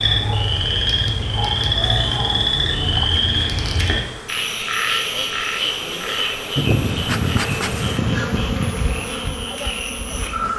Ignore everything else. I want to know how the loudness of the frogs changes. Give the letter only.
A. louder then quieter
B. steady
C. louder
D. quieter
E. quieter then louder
D.